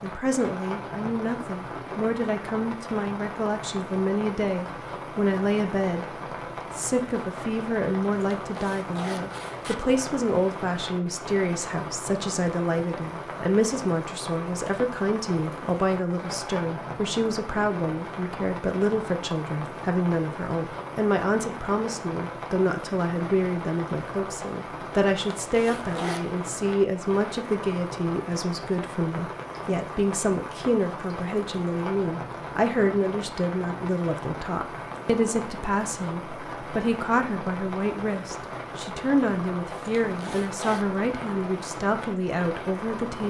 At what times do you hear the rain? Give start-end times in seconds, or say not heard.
0.0-43.2.